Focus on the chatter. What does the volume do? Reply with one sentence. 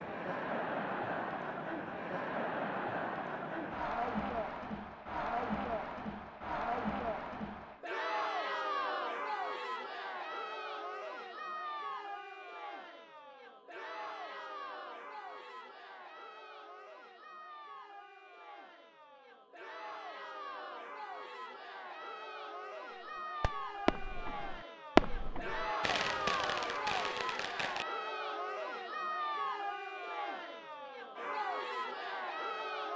The volume of the chatter goes down, then up.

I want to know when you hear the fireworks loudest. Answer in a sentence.
The loudest moment of the fireworks is at 25 seconds.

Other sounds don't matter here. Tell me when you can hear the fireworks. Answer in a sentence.
You can hear the fireworks from 23.4 to 27.9 s.